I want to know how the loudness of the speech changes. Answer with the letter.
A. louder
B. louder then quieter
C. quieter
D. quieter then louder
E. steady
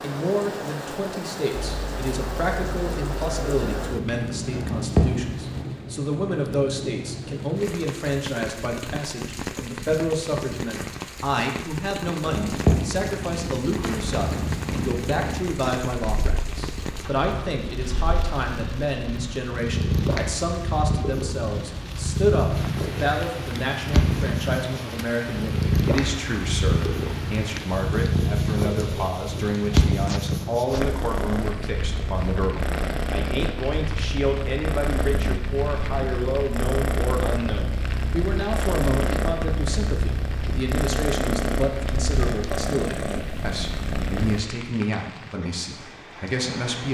E.